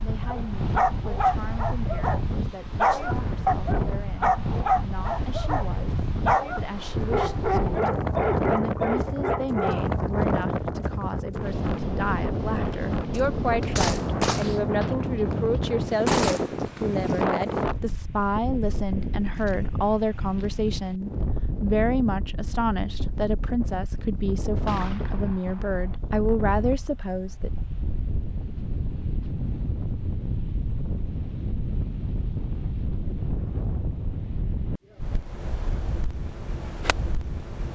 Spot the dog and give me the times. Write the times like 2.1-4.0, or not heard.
0.2-9.8.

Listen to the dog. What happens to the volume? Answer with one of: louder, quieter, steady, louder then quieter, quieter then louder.
steady.